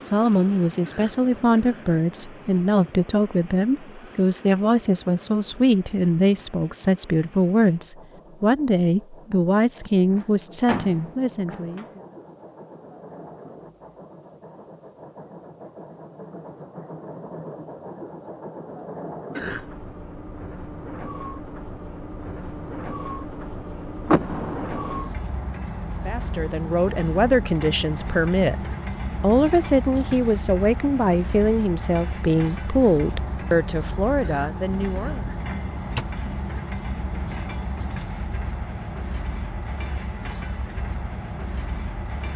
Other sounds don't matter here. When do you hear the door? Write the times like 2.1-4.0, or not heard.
10.1-11.9, 24.1-24.9, 35.1-36.0.